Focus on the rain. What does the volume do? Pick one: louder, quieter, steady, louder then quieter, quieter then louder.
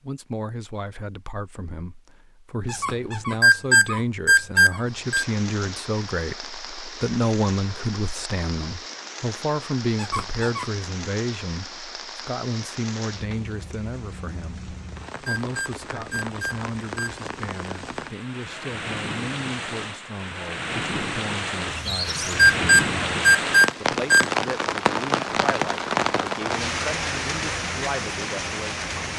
louder.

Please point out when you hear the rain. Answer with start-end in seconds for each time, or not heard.
4.8-29.1.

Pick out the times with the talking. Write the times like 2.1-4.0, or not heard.
0.0-28.9.